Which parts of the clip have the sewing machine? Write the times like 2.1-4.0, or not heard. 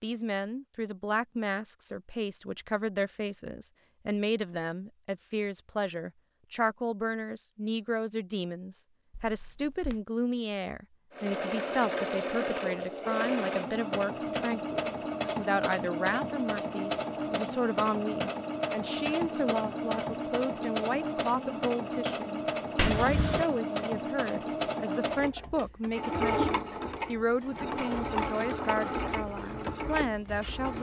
11.1-30.7.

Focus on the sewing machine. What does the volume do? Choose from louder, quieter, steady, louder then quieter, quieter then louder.
steady.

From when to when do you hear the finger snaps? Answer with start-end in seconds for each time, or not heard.
9.1-10.0, 22.8-23.4.